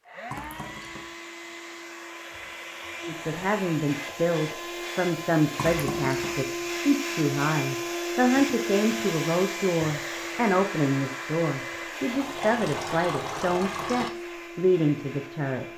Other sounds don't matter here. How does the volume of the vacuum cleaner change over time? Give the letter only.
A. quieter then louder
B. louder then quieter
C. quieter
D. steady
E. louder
B.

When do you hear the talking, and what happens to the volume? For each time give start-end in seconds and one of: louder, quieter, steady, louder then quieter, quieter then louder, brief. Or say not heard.
3.0-15.7 steady.